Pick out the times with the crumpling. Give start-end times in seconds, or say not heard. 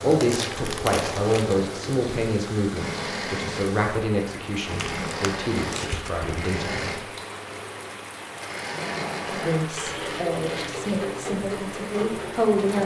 0.1-1.6, 4.8-6.3, 9.8-11.1.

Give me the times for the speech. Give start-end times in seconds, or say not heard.
0.0-7.0, 9.2-12.8.